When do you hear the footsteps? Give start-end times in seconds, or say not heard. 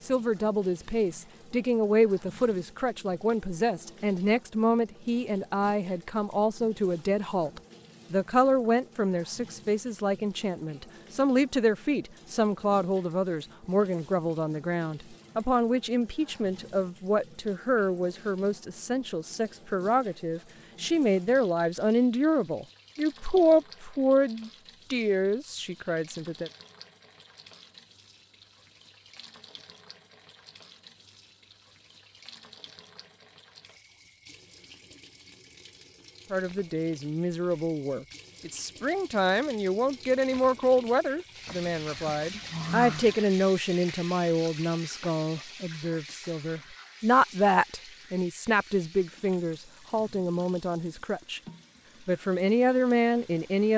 not heard.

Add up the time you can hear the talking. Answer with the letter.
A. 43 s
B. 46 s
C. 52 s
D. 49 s
A.